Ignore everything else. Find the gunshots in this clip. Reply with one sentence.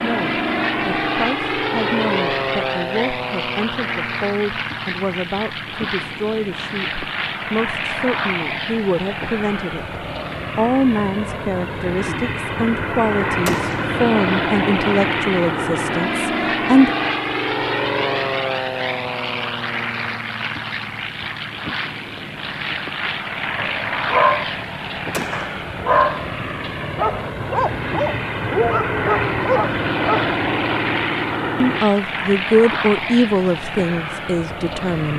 You can hear the gunshots from 13.4 to 13.9 s and from 25.1 to 25.6 s.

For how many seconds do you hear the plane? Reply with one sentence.
You can hear the plane for 35 seconds altogether.